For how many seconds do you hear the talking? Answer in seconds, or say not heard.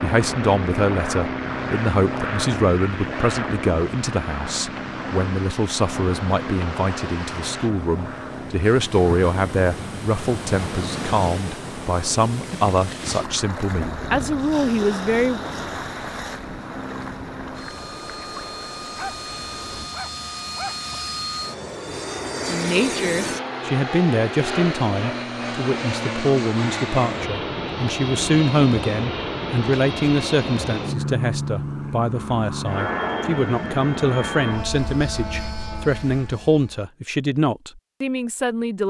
32 s.